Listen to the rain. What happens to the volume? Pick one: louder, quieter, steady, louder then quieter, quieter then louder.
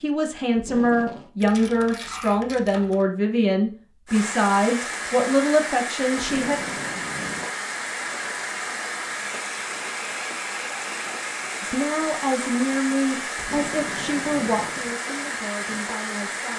steady.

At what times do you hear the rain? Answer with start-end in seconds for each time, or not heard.
4.0-16.5.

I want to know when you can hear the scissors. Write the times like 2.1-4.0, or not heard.
not heard.